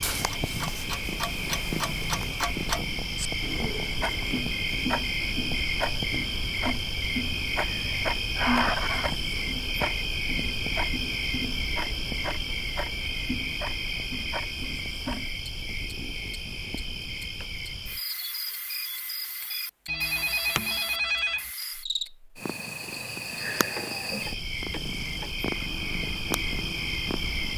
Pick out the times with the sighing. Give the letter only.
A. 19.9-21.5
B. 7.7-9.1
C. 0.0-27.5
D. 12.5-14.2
B.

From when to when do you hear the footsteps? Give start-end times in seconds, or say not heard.
not heard.